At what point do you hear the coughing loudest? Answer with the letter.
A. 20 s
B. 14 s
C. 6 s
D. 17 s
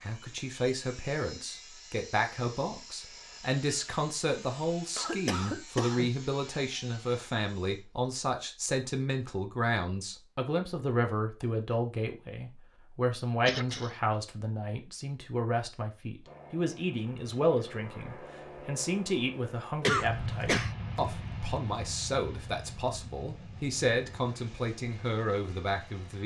A.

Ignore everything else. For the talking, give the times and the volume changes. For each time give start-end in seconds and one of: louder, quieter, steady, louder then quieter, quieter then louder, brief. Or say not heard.
0.0-26.2 steady.